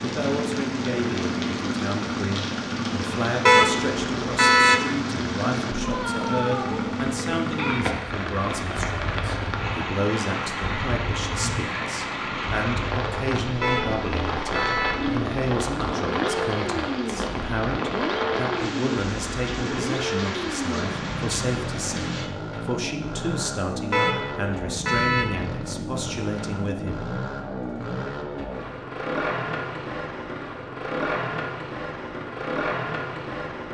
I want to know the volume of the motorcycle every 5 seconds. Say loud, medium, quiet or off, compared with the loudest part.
loud, loud, medium, loud, loud, loud, loud.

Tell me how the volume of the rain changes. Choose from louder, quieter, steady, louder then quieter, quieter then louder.
steady.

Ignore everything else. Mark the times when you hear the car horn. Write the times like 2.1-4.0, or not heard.
3.5-4.8, 13.6-15.0, 23.9-25.3.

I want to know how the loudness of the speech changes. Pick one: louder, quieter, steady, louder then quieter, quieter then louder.
steady.